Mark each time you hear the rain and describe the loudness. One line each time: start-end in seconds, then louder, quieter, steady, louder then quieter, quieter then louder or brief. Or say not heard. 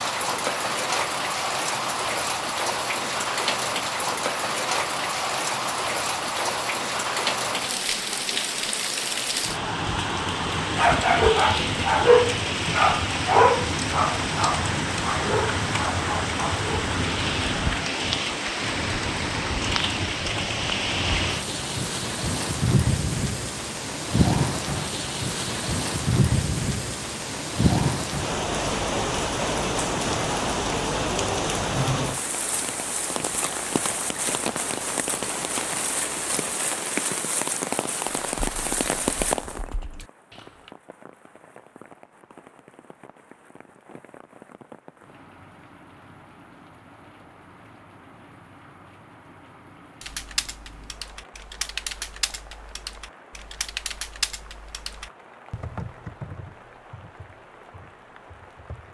0.0-58.8 quieter.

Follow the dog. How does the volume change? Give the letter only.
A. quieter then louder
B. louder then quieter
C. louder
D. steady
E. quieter
E.